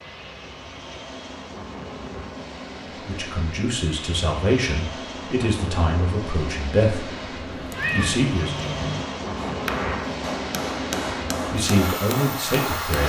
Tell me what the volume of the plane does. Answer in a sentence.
The loudness of the plane goes up.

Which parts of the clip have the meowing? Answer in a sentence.
The meowing can be heard from 7.5 to 9.1 s.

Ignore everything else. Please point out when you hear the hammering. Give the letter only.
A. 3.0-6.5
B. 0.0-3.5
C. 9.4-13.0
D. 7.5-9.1
C.